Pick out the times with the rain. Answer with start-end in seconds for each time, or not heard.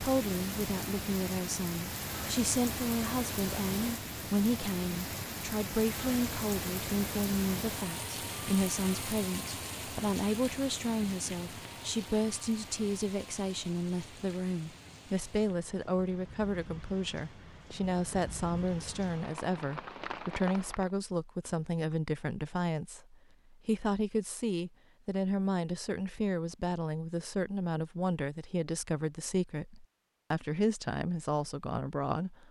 0.0-20.9.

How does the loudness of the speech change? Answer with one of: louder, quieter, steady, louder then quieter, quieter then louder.
steady.